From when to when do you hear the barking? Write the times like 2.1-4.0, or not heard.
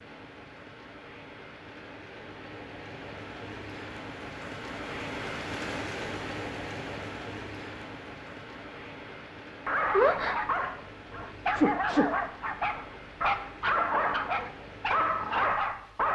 9.7-16.1.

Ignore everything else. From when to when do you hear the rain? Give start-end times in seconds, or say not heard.
0.0-16.1.